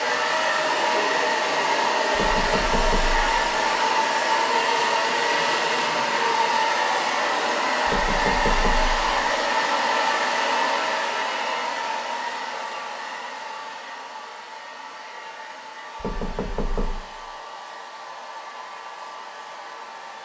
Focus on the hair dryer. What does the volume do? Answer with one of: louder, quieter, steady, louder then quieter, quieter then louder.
quieter.